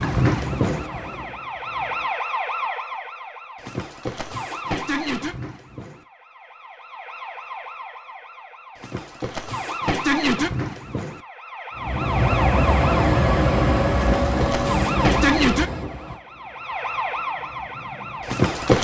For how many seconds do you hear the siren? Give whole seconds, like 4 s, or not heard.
19 s.